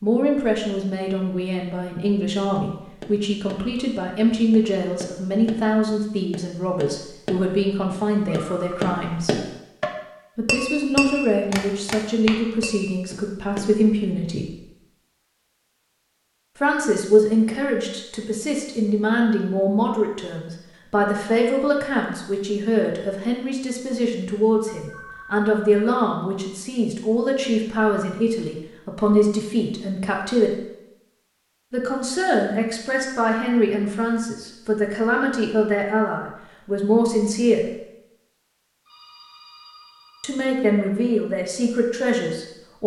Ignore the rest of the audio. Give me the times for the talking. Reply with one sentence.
You can hear the talking from 0.0 to 9.4 s, from 10.3 to 14.6 s, from 16.6 to 30.6 s, from 31.7 to 37.6 s and from 40.2 to 42.8 s.